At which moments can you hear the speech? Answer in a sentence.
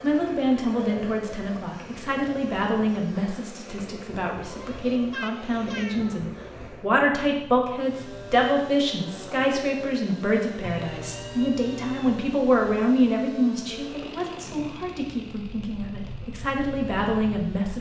The speech can be heard from 0.0 to 17.7 s.